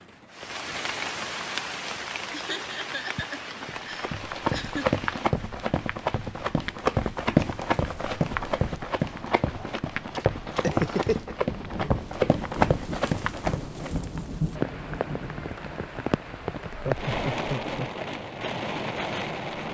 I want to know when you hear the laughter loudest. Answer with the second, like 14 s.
11 s.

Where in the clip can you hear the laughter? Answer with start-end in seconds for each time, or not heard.
2.3-4.8, 10.6-11.3, 16.6-17.9.